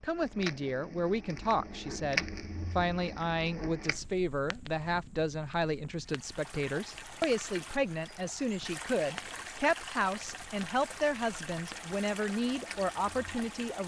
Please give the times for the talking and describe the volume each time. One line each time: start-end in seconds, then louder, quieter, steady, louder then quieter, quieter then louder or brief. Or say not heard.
0.0-13.8 steady.